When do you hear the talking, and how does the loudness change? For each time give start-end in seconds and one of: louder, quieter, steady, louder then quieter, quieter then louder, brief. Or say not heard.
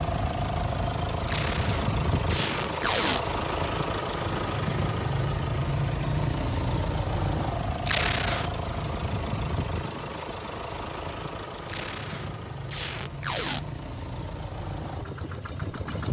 not heard.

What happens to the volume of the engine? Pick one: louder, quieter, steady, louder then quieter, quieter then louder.
quieter.